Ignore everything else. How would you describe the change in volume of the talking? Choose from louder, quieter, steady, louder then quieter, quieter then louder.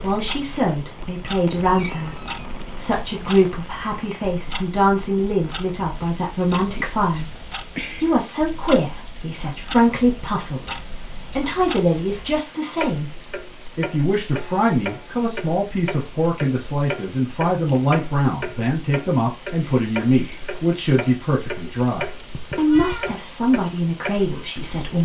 steady.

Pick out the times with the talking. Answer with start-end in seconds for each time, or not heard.
0.0-7.3, 8.0-13.1, 13.8-25.0.